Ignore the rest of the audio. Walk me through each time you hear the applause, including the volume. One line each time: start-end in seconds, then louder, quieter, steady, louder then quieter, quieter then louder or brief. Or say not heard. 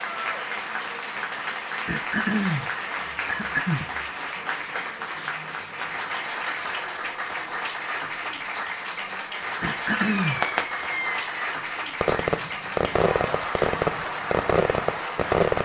0.0-15.6 steady.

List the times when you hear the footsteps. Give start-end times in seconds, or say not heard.
not heard.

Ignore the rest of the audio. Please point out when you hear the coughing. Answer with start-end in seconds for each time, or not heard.
1.9-4.0, 9.6-10.4.